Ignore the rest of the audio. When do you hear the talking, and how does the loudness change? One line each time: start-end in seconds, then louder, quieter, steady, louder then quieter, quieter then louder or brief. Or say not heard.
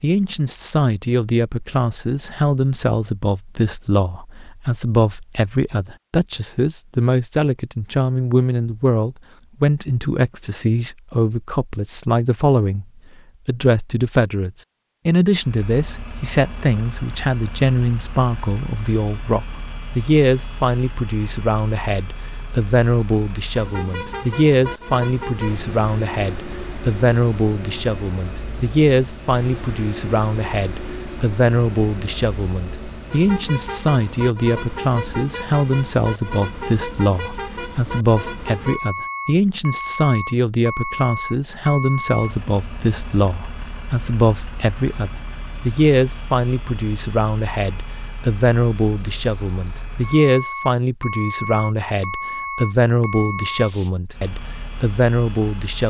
0.0-12.8 steady
13.4-55.8 steady.